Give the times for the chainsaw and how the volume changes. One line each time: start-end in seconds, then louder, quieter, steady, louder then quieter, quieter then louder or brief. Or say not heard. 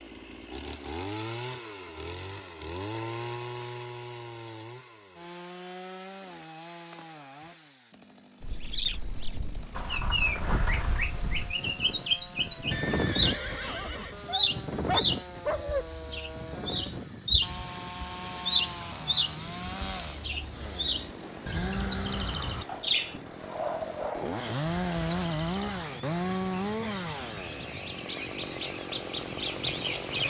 0.0-30.2 quieter then louder.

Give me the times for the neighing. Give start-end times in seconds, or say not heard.
12.7-14.2.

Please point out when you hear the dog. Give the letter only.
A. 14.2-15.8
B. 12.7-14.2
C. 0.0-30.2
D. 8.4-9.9
A.